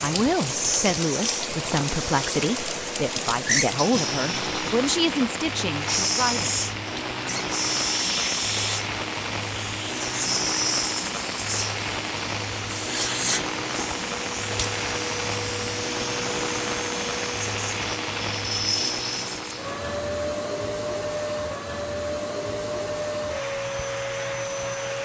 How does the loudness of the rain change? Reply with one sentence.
The volume of the rain stays about the same.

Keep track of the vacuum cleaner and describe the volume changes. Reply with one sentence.
The volume of the vacuum cleaner stays about the same.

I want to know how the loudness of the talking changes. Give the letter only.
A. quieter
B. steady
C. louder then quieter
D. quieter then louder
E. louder
B.